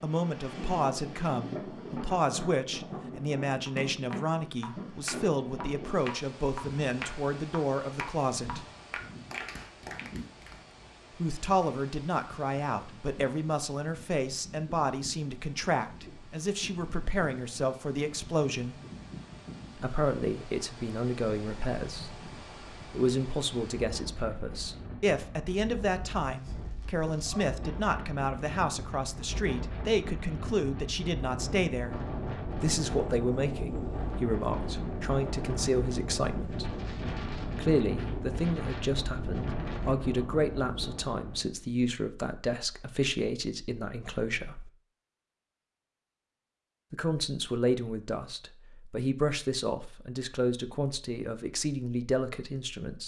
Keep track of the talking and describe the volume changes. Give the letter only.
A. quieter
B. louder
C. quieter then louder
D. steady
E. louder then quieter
D.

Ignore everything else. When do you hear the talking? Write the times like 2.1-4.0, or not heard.
0.0-8.7, 11.2-18.8, 19.8-32.0, 32.6-36.8, 37.5-44.7, 46.9-53.0.